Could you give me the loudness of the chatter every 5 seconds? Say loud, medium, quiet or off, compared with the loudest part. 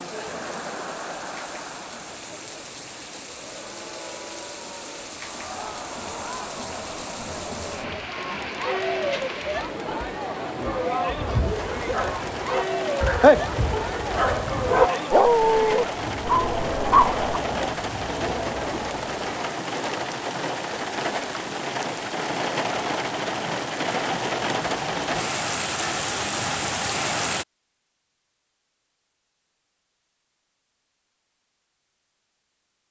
medium, loud, loud, loud, off, off, off.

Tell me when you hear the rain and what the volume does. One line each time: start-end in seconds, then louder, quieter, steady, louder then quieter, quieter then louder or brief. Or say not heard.
0.0-27.4 louder.